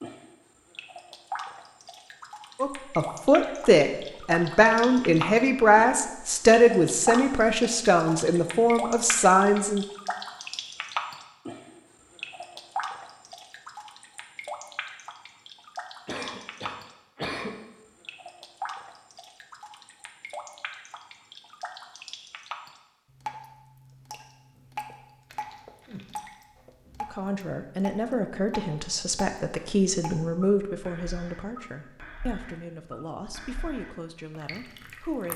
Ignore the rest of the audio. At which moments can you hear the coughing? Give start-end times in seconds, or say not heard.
16.1-17.6.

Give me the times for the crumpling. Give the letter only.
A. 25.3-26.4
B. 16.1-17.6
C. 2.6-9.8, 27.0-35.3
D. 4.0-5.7
A.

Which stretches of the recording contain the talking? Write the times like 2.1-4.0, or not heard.
2.6-9.8, 27.0-35.3.